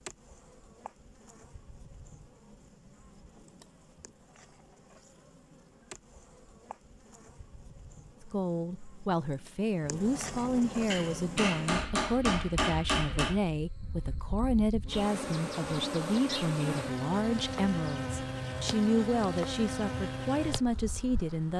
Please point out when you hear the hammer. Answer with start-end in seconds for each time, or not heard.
10.9-13.4.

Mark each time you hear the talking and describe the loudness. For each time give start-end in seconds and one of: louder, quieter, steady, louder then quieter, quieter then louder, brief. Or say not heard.
8.2-21.5 steady.